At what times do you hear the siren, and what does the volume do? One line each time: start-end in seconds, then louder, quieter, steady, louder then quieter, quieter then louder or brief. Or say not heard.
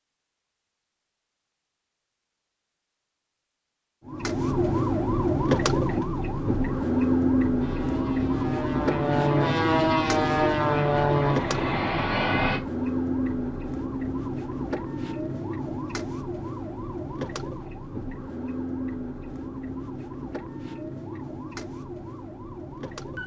4.0-23.2 quieter.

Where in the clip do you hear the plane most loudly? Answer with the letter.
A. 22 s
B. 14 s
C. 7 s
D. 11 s
D.